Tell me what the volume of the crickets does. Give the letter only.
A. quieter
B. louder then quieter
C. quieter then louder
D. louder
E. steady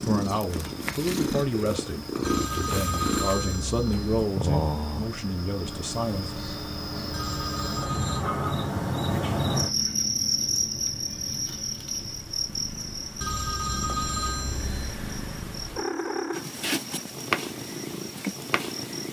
B.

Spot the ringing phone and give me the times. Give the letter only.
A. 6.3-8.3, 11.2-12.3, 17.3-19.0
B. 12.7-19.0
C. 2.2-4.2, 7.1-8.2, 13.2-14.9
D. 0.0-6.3
C.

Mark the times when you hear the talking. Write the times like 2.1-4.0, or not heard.
0.0-6.3.